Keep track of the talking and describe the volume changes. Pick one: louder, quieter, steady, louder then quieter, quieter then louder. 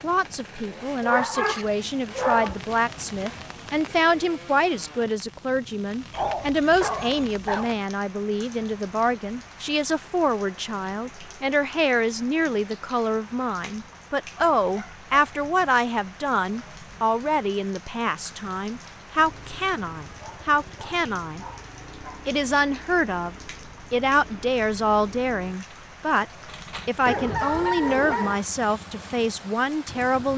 steady.